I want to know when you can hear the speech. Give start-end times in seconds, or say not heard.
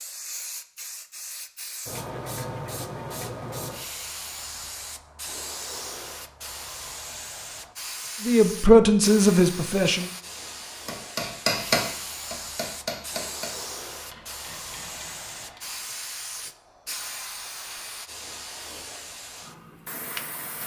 8.2-10.1.